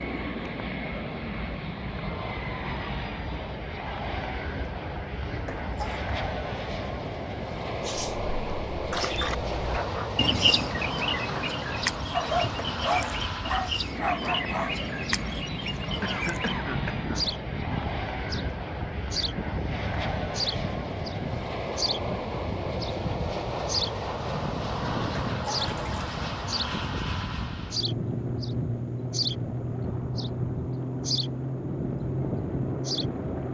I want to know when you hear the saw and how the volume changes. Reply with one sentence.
The saw can't be heard in this clip.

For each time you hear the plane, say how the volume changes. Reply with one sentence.
The plane can be heard from 0.0 to 33.5 s, at a steady volume.